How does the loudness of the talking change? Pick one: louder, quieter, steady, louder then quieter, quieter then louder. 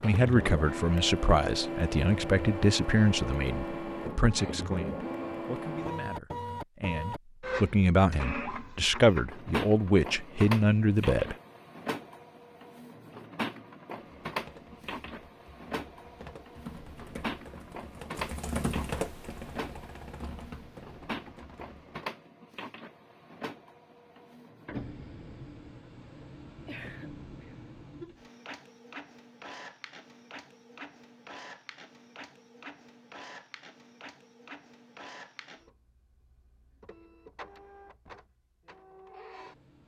quieter then louder.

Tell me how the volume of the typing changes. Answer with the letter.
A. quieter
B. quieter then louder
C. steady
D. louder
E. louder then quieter
E.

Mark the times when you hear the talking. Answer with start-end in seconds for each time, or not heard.
0.0-11.3.